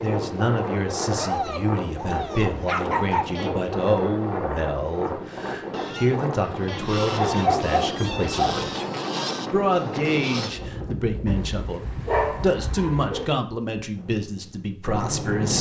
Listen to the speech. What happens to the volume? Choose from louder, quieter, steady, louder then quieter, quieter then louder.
steady.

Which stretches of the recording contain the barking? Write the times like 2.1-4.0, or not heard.
1.2-3.5, 7.2-8.6, 11.2-13.2.